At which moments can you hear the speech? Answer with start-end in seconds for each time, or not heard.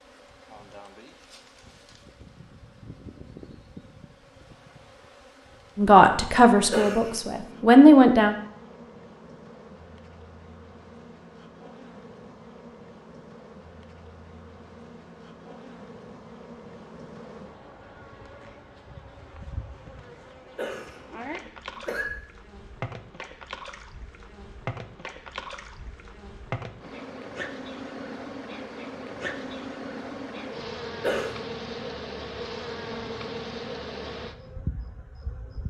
5.8-8.3.